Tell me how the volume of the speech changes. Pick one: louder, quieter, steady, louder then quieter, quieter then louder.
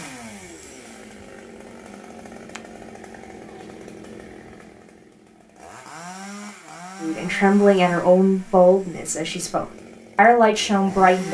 quieter then louder.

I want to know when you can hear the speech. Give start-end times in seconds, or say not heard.
7.0-11.2.